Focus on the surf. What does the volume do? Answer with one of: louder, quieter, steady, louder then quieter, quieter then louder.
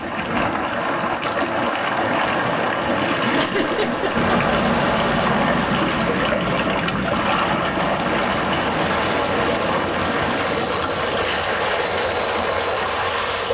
steady.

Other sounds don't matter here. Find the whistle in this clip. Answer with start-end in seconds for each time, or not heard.
not heard.